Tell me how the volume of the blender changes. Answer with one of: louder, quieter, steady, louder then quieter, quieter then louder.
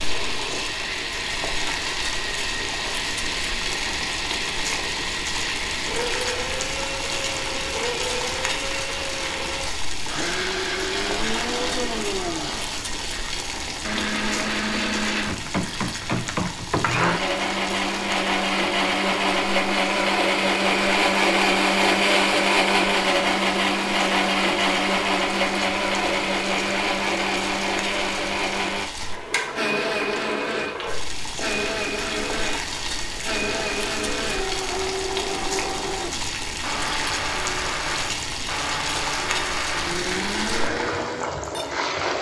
louder then quieter.